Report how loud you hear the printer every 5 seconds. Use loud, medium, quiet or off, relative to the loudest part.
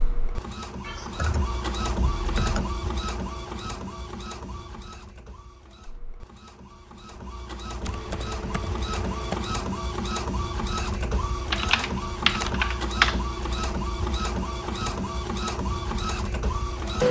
medium, medium, loud, loud.